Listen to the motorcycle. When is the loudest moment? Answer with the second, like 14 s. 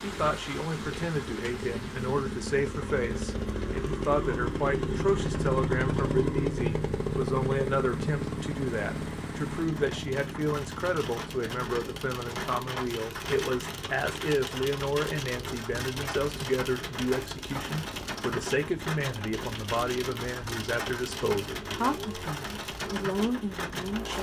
6 s.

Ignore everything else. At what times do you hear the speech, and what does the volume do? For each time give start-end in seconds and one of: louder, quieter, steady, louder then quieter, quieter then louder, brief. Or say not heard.
0.0-24.1 steady.